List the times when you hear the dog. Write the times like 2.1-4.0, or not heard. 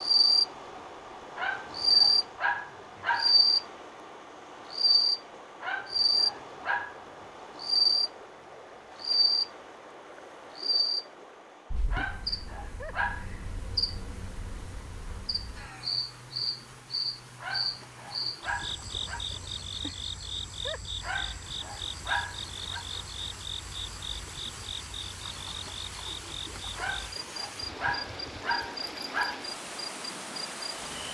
1.4-3.4, 5.6-7.0, 11.9-13.3, 17.4-19.2, 21.0-22.9, 26.8-29.4.